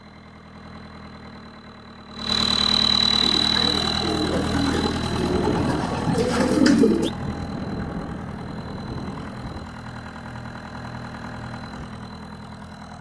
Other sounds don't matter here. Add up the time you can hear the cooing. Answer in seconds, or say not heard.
4 s.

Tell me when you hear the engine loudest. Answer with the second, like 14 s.
3 s.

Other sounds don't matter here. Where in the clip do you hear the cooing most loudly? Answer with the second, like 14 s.
7 s.